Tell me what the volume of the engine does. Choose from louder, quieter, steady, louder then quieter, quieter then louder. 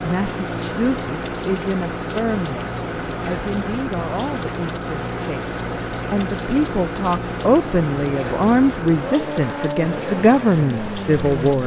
steady.